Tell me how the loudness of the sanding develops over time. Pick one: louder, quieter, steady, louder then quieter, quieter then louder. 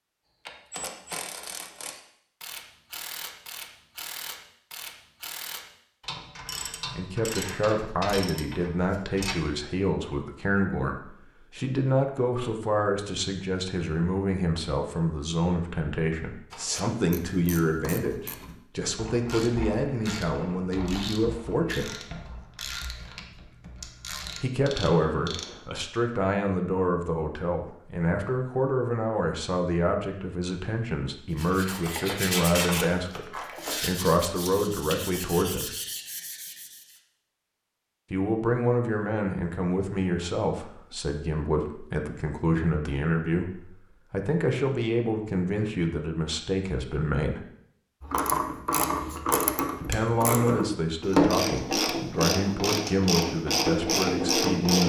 quieter.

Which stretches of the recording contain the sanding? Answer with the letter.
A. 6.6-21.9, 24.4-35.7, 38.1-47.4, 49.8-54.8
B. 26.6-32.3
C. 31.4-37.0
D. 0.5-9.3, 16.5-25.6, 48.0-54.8
C.